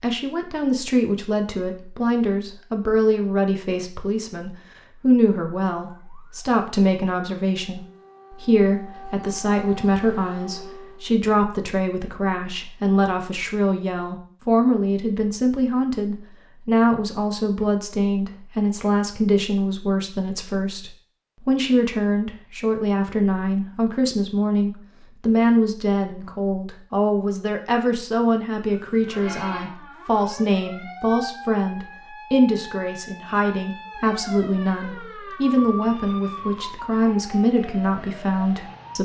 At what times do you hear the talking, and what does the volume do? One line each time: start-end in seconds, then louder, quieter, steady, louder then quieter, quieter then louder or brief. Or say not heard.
0.0-38.9 steady.